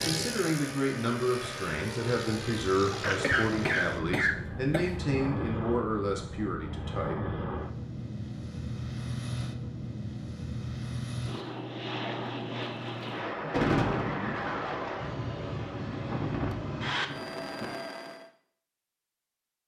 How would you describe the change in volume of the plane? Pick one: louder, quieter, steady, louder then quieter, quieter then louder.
steady.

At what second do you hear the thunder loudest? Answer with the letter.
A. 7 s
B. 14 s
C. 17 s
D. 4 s
B.